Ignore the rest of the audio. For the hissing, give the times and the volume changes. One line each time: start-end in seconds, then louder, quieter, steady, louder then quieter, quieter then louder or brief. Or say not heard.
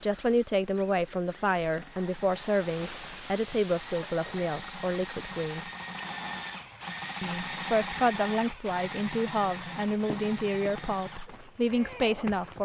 0.0-5.7 louder.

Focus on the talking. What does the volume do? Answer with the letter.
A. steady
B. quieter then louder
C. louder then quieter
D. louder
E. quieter
A.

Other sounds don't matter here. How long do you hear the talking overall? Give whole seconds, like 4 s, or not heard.
11 s.